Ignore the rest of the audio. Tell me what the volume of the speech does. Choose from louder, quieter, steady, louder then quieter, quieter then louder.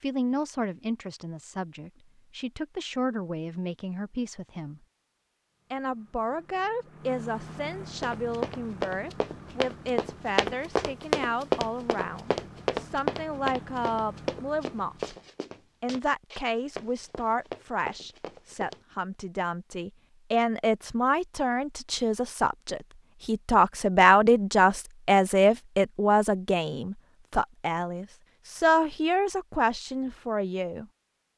louder.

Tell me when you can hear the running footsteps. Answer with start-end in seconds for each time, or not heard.
8.0-18.8.